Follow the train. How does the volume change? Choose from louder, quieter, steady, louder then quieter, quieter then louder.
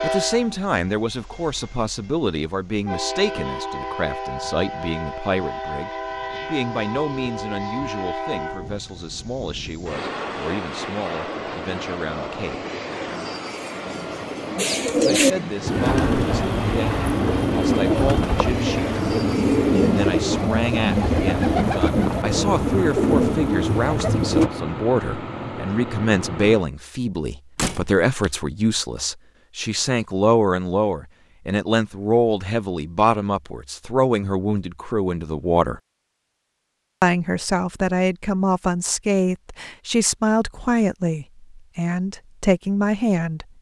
steady.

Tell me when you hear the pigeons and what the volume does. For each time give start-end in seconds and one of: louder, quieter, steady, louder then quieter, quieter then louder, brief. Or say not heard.
14.6-24.5 steady.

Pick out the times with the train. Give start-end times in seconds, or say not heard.
0.0-26.6.